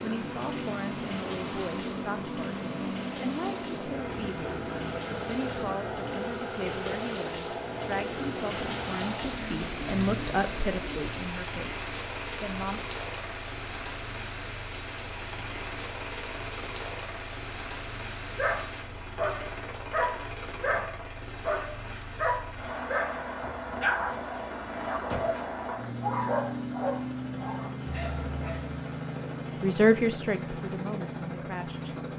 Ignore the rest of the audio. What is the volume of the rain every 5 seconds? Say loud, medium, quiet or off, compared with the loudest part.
loud, loud, loud, loud, off, off, off.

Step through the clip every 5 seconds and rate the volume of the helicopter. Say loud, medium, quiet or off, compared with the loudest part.
loud, loud, medium, medium, loud, loud, loud.